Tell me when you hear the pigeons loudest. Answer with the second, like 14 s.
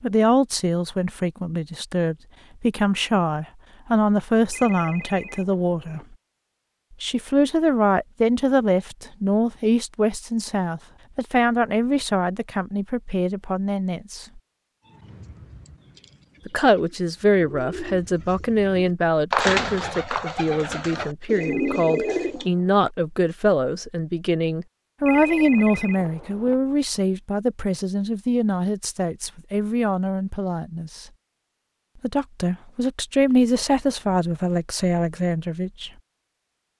19 s.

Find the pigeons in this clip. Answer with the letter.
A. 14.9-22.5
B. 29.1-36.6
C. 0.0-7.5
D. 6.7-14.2
A.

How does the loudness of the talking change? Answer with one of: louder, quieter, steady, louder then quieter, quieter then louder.
steady.